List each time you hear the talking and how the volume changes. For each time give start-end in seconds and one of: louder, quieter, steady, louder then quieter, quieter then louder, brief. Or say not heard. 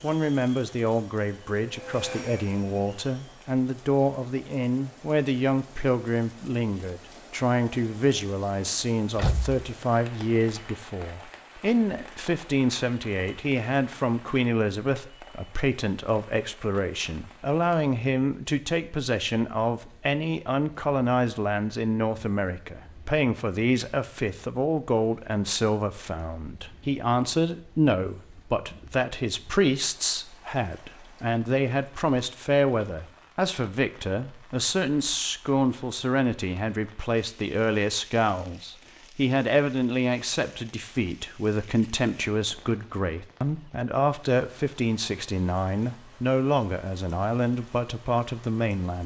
0.0-49.0 steady.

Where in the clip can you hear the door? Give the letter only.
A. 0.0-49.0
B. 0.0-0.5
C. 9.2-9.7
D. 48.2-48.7
C.